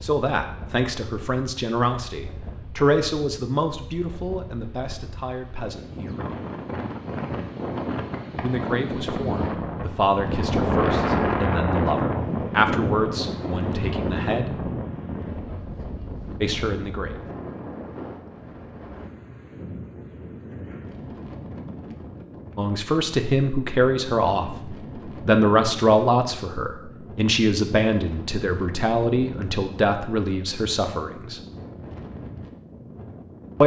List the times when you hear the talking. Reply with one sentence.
The talking can be heard from 0.0 to 6.4 s, from 8.4 to 14.6 s, from 16.4 to 17.2 s and from 22.6 to 31.4 s.